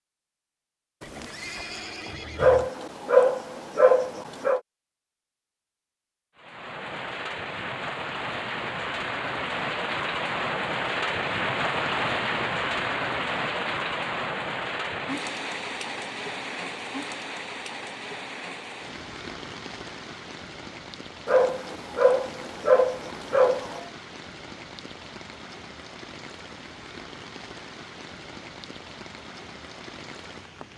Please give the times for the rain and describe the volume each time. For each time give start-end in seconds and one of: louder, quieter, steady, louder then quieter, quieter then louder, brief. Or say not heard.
6.3-30.7 quieter.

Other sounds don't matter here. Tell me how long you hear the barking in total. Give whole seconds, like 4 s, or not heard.
5 s.